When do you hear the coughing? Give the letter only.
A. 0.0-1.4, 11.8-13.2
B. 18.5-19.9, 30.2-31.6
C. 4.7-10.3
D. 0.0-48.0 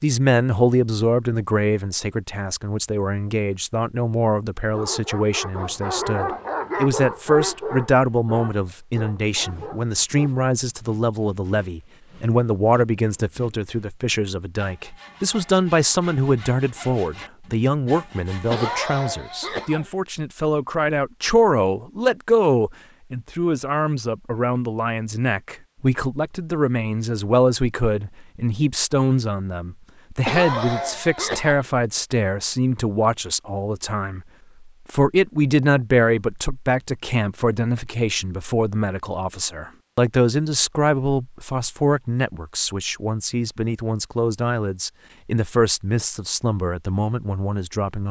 B.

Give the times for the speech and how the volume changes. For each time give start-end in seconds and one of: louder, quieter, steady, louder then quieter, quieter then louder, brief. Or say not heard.
0.0-48.0 steady.